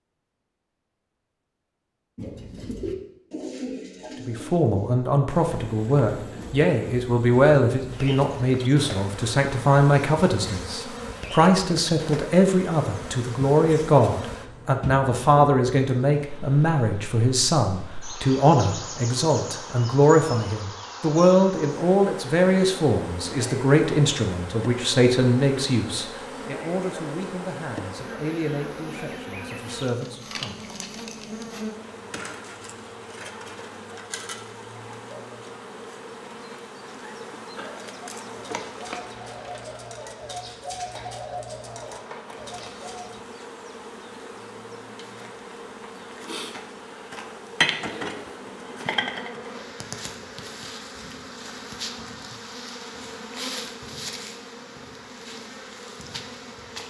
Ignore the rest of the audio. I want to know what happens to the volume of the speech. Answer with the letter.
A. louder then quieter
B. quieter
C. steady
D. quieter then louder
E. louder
B.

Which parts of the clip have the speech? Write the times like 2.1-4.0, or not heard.
4.2-30.8.